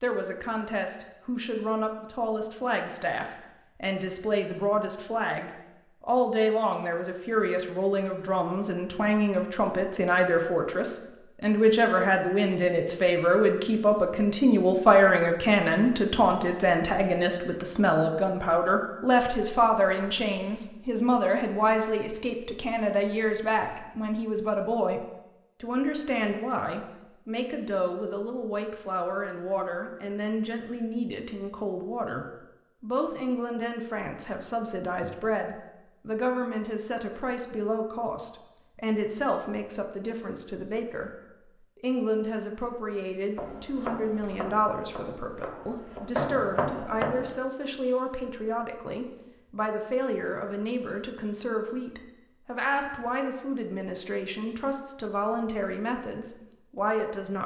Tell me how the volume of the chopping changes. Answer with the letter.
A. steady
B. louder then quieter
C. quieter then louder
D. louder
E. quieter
C.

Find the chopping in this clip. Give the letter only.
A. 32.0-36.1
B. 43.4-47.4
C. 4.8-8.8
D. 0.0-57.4
B.